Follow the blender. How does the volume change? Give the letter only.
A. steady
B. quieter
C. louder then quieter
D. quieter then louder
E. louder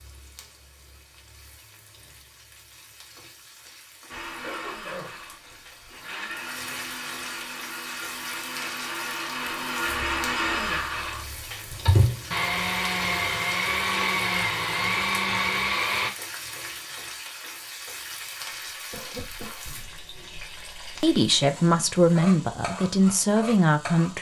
E.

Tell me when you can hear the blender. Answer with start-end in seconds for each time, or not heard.
4.0-16.1.